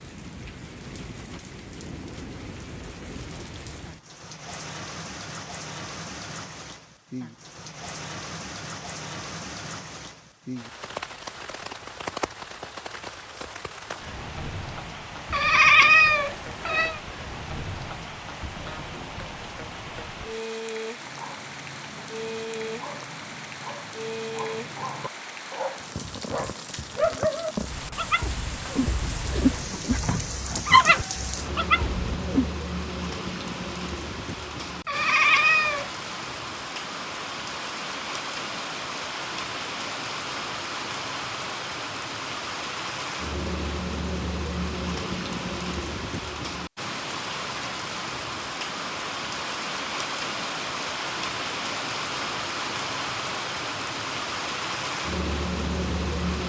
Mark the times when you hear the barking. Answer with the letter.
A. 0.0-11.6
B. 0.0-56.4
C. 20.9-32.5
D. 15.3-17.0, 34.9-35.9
C.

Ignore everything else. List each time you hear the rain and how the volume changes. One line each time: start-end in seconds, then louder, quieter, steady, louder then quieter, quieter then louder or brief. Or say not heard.
0.0-56.4 louder.